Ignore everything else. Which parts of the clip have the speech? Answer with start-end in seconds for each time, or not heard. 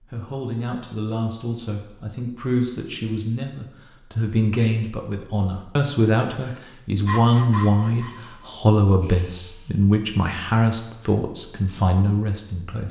0.0-12.8.